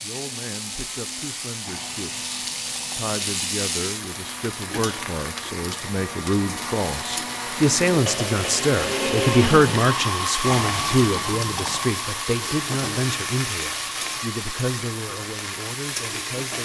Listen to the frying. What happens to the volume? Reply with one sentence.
The loudness of the frying stays about the same.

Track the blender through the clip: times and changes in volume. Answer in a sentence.
The blender can be heard from 0.0 to 16.4 s, getting louder then quieter.